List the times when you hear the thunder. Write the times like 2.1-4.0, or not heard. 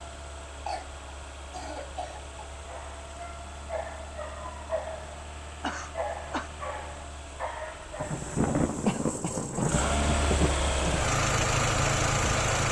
8.0-11.1.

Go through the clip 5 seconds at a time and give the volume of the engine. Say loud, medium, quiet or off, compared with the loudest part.
quiet, quiet, loud.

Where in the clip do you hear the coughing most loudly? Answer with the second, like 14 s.
9 s.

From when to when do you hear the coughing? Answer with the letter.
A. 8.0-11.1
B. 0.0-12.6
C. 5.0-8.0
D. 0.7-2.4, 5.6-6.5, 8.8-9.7
D.